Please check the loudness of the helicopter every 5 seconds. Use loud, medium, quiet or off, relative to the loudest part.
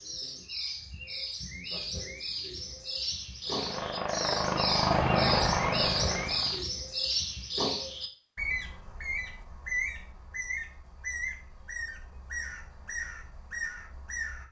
loud, loud, off.